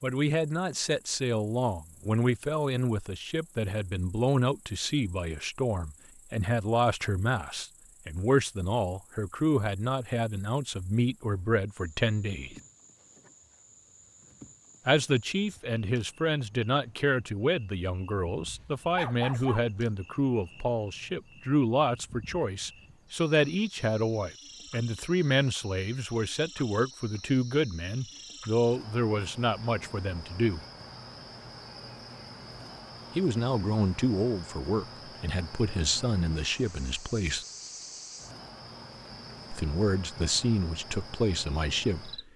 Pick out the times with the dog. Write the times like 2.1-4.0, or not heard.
18.5-19.6.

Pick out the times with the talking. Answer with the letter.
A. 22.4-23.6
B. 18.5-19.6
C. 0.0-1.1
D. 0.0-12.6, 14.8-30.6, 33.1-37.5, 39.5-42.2
D.